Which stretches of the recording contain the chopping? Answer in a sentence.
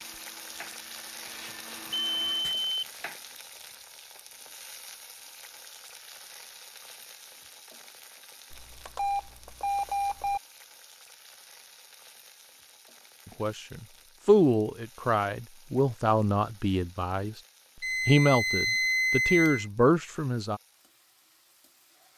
The chopping can be heard from 0.0 to 3.9 s.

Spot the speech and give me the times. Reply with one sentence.
The speech can be heard from 13.4 to 17.4 s and from 18.1 to 20.6 s.